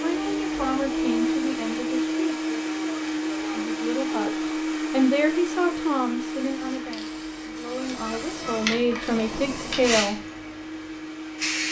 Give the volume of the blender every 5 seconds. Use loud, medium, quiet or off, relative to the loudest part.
loud, medium, medium.